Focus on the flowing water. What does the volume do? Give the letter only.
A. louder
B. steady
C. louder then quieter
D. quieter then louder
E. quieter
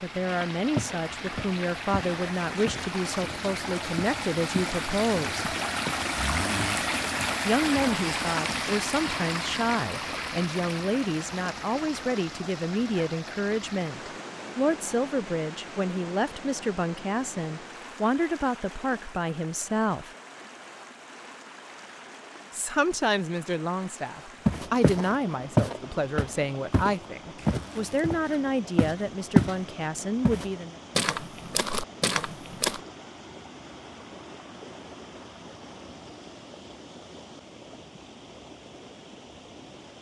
E.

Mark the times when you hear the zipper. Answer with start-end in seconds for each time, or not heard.
6.2-6.8, 27.4-28.1.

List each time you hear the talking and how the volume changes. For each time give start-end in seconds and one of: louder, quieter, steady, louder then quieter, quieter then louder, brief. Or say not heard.
0.0-5.5 steady
7.5-20.1 steady
22.5-30.8 steady.